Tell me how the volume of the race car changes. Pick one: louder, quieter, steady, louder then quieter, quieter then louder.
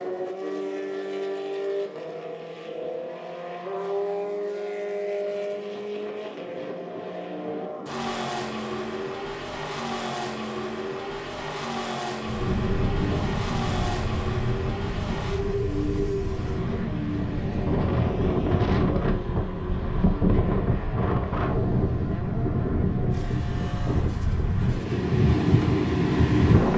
quieter.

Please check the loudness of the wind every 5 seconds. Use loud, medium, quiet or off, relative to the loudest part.
off, off, medium, medium, medium, loud.